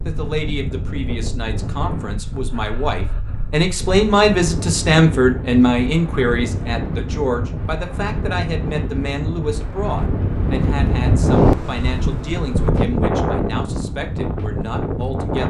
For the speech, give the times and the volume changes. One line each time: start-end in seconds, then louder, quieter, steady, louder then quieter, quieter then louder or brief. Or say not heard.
0.1-15.4 louder then quieter.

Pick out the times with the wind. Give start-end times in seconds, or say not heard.
0.0-15.4.